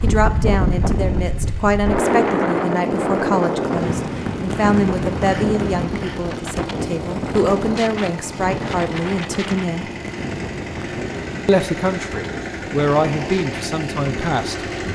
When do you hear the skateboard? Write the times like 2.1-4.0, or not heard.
not heard.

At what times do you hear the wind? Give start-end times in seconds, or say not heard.
0.0-14.9.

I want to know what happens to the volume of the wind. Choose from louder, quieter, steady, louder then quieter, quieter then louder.
quieter.